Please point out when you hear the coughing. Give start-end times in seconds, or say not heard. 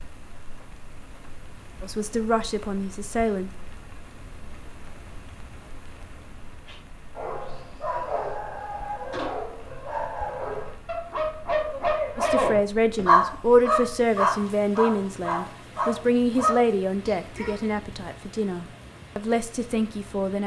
not heard.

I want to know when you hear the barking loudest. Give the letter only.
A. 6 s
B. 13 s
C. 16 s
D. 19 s
B.